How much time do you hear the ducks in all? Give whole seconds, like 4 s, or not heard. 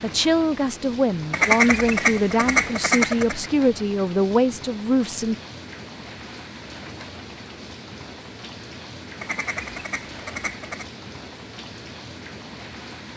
4 s.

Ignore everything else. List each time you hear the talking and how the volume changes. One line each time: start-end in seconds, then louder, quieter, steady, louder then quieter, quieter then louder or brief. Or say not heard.
0.0-5.3 steady.